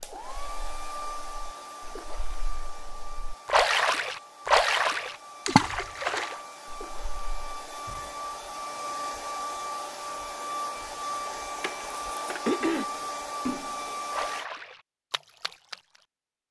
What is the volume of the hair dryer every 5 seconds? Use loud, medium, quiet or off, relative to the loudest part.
medium, loud, loud, off.